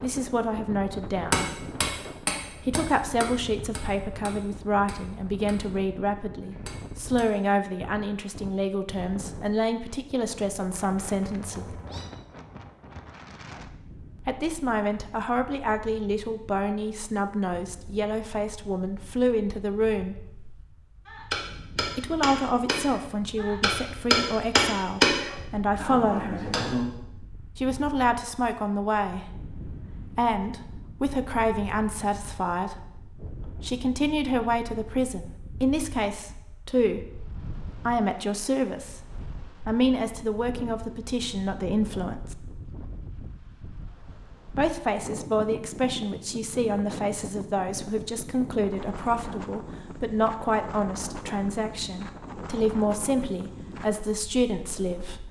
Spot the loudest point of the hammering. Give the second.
25 s.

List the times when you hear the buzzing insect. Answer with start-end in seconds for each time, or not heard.
not heard.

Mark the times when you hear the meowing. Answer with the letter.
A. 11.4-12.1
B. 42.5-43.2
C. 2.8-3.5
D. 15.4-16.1
A.